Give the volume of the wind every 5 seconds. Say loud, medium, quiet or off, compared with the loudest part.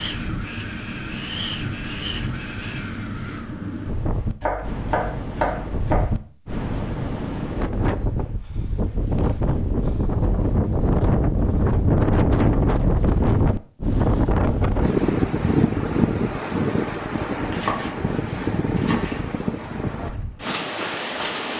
medium, medium, loud, loud, medium.